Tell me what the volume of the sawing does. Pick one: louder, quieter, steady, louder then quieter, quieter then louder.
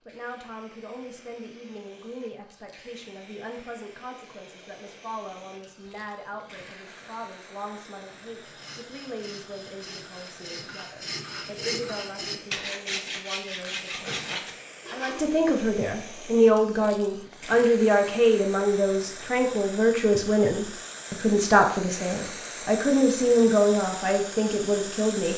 louder.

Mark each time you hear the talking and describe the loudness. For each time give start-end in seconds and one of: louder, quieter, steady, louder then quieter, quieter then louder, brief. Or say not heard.
0.1-25.3 louder.